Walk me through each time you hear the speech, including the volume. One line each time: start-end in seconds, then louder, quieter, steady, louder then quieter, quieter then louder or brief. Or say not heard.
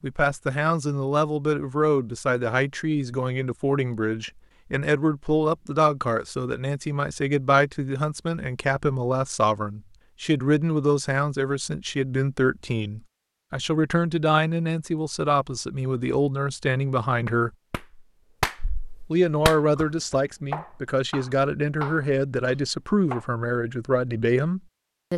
0.0-17.5 steady
19.1-25.1 steady.